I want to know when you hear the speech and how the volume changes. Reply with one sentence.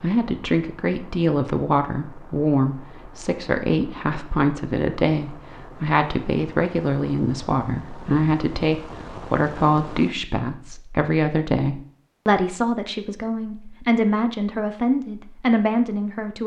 The speech can be heard from 0.0 to 16.4 s, at a steady volume.